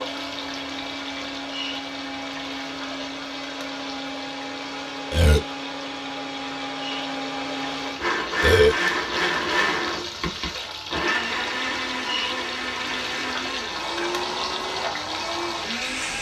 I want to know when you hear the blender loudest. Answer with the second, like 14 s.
9 s.